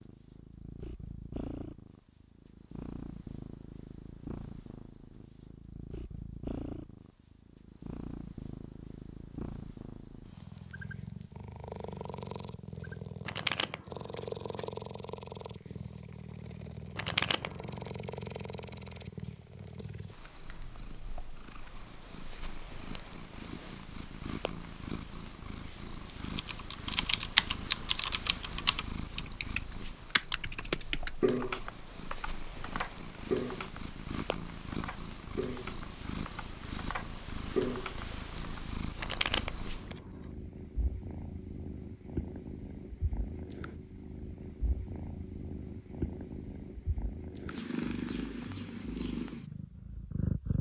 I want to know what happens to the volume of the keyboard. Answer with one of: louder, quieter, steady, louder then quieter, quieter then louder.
quieter then louder.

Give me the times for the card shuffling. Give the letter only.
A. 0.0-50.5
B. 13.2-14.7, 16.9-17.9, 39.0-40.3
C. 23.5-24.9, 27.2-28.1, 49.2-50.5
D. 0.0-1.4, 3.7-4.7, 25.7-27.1
B.